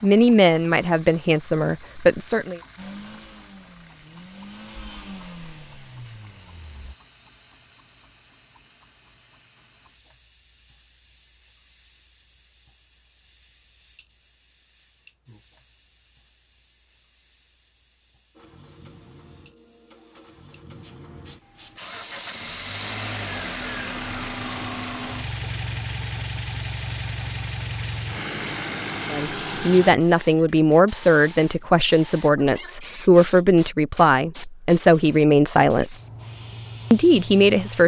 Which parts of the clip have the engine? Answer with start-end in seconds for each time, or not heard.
2.8-7.0, 18.3-29.9.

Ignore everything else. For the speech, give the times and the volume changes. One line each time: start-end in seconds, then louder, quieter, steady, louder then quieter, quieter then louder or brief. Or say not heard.
0.0-2.6 brief
29.1-36.0 steady
36.9-37.8 brief.